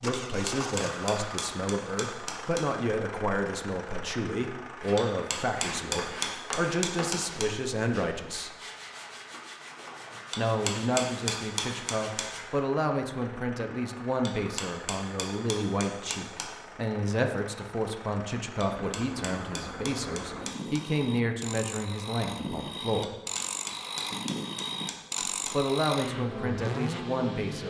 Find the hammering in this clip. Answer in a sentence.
The hammering can be heard from 0.2 to 2.6 s, from 5.0 to 7.5 s, from 10.3 to 12.2 s, from 14.2 to 16.5 s, from 18.6 to 20.8 s and from 23.0 to 25.6 s.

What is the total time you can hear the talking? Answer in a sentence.
The talking can be heard for 23 seconds in total.